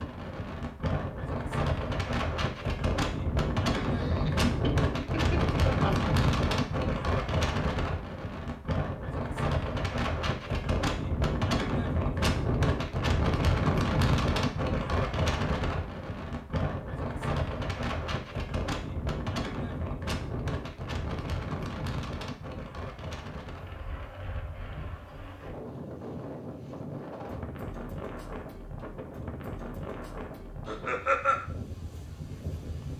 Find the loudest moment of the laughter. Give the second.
31 s.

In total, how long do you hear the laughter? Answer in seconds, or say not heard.
3 s.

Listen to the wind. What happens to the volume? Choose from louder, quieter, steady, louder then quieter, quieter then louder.
quieter.